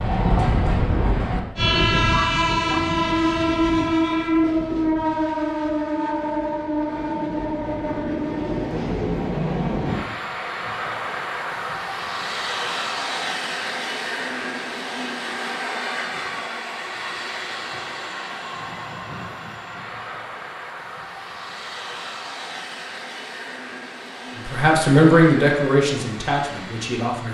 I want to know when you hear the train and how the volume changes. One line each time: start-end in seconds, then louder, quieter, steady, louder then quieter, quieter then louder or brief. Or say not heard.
0.0-27.3 quieter.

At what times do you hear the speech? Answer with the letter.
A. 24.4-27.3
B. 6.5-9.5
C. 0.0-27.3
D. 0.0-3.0
A.